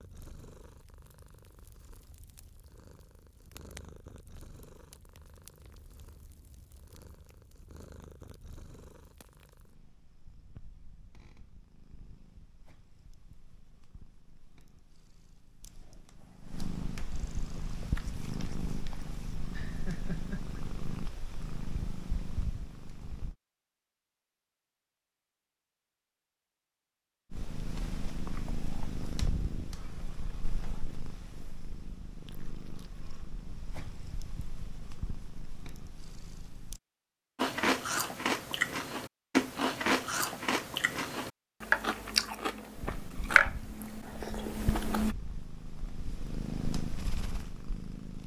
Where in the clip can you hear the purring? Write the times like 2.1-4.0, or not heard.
0.0-23.4, 27.3-36.8, 42.8-48.2.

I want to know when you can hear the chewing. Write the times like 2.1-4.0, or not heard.
37.4-45.1.